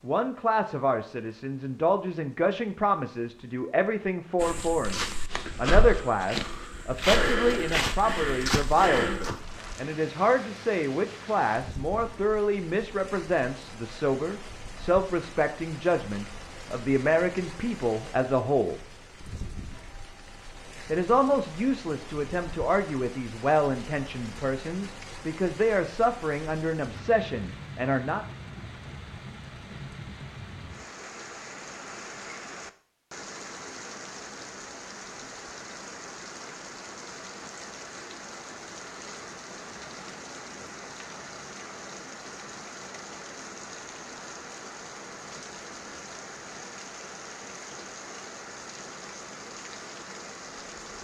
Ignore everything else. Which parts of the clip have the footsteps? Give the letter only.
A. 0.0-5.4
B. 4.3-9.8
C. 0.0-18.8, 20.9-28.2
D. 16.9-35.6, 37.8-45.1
B.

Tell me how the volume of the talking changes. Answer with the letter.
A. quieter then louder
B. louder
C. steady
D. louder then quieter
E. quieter
C.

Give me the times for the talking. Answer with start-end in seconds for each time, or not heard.
0.0-18.8, 20.9-28.2.